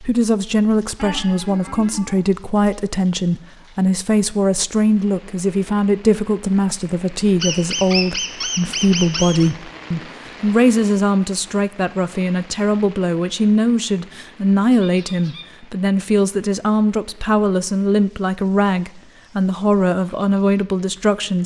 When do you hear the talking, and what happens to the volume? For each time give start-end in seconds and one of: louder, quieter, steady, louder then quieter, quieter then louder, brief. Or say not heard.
0.0-21.4 steady.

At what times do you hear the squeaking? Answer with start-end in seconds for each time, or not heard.
0.9-2.2, 7.4-9.5, 14.7-15.4.